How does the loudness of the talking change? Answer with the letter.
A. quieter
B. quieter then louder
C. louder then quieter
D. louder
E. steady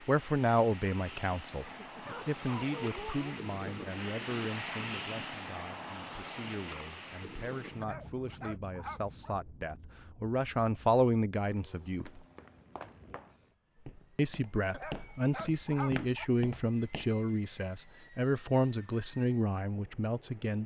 B.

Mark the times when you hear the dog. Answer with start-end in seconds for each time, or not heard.
1.6-3.4, 7.8-9.3, 14.7-16.2.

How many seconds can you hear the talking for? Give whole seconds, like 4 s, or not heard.
19 s.